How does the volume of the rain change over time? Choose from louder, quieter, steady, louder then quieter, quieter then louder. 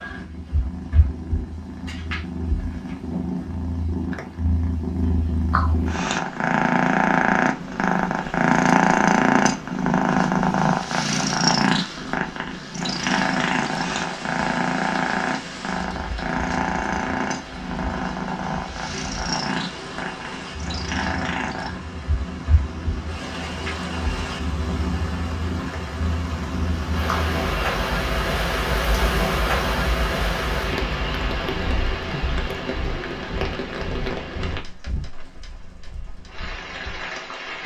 louder then quieter.